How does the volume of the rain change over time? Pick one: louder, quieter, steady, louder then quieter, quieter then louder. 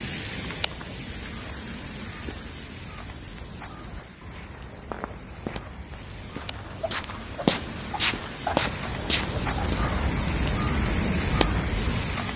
quieter then louder.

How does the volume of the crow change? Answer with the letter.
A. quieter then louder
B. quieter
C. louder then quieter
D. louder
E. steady
D.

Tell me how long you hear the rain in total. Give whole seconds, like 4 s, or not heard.
12 s.